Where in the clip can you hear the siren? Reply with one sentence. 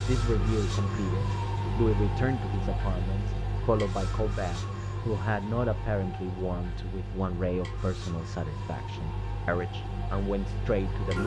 The siren can be heard from 0.0 to 11.2 s.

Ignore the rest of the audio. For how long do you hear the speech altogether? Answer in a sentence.
The speech can be heard for 11 seconds in total.